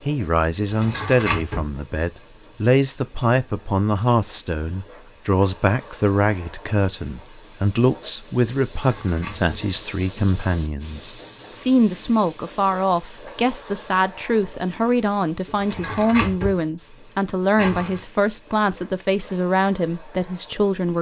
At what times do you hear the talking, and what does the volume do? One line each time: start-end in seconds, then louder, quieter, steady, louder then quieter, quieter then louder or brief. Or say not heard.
0.1-20.9 steady.